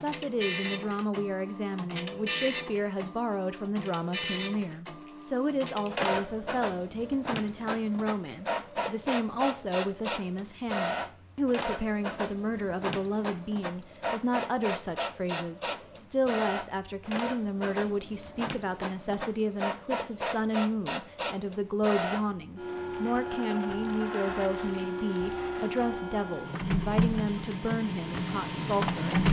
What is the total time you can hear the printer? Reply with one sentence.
You can hear the printer for 29 seconds altogether.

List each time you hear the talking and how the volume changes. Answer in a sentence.
The talking can be heard from 0.0 to 29.2 s, at a steady volume.